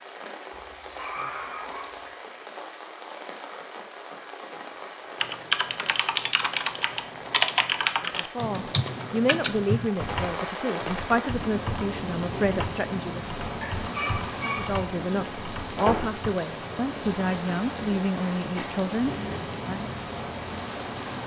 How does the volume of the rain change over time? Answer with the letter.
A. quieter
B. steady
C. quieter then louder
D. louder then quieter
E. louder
E.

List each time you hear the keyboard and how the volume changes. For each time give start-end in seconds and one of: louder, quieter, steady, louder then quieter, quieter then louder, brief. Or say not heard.
5.2-16.2 quieter.